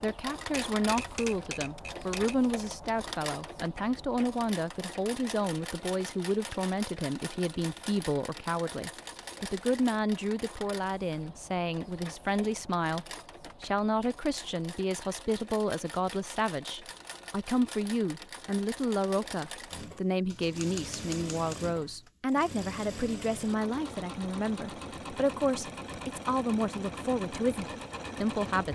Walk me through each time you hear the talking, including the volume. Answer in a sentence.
You can hear the talking from 0.0 to 28.7 s, at a steady volume.